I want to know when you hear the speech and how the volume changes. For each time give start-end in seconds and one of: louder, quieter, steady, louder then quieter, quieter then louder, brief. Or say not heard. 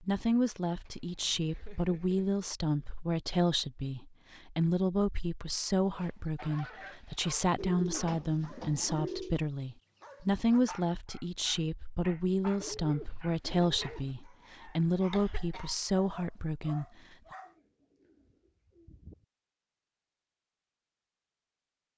0.0-16.9 steady.